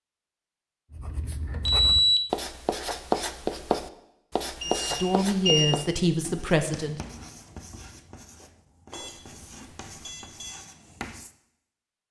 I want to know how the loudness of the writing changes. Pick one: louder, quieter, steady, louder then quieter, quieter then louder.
quieter.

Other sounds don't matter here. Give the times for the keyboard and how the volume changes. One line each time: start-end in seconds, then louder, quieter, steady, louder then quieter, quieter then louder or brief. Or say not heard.
not heard.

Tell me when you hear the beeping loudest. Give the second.
2 s.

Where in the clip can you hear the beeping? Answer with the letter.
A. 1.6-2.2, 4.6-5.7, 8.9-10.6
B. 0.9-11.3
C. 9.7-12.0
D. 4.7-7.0
A.